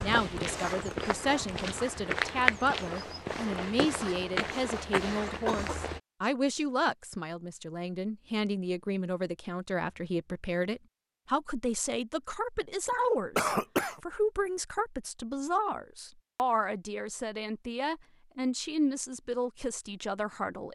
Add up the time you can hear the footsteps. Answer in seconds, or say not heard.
6 s.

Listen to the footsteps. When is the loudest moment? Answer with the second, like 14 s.
2 s.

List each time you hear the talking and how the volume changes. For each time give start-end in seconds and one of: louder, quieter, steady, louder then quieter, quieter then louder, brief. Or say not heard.
0.0-20.7 steady.